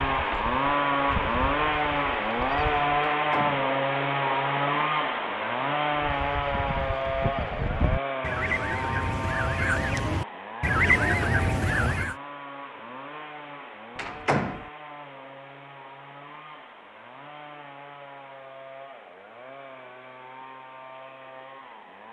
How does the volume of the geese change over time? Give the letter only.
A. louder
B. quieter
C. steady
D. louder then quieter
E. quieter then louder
A.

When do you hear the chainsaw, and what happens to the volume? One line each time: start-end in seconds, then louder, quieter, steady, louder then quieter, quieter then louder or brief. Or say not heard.
0.0-22.0 quieter.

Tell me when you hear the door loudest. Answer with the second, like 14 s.
14 s.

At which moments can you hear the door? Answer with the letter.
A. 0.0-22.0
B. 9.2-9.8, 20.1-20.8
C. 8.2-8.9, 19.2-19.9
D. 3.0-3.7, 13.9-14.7
D.